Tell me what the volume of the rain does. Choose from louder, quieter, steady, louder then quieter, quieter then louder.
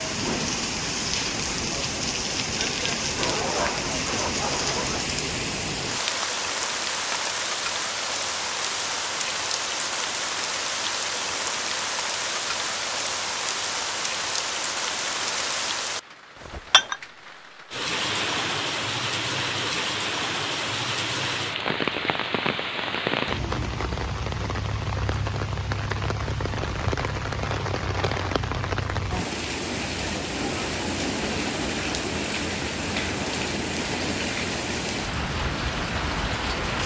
steady.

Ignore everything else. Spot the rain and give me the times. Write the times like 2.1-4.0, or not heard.
0.0-36.8.